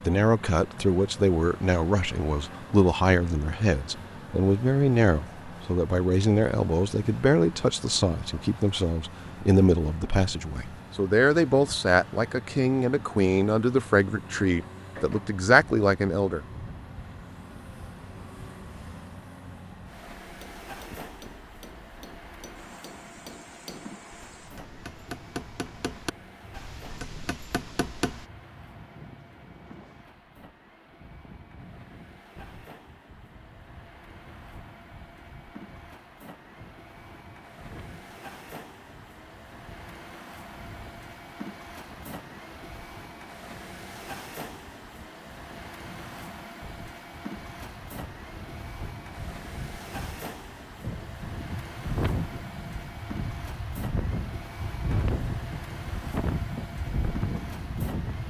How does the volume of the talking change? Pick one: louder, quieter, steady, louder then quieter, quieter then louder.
steady.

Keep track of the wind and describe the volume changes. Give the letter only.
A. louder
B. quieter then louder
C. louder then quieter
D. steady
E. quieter
A.